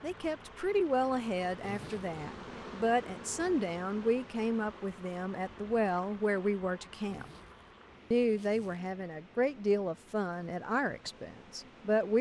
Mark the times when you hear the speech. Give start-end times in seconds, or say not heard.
0.0-7.2, 8.1-12.1.